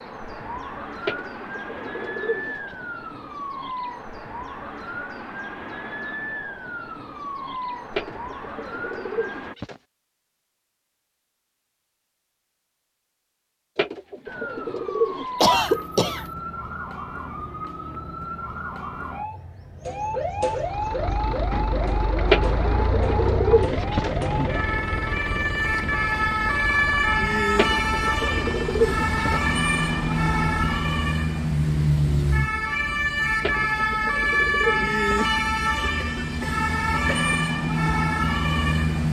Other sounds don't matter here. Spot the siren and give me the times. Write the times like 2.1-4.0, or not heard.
0.0-9.6, 14.2-39.0.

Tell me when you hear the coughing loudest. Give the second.
16 s.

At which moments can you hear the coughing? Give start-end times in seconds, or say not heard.
15.4-16.2, 36.0-37.4.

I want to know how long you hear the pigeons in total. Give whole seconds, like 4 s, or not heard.
11 s.